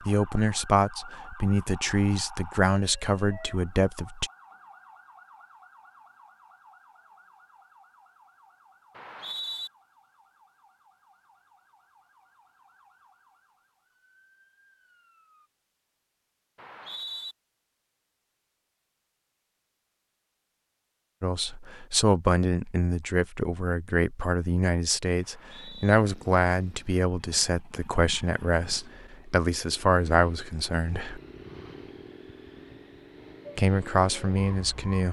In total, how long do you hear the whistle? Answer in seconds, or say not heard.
2 s.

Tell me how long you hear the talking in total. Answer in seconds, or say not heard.
16 s.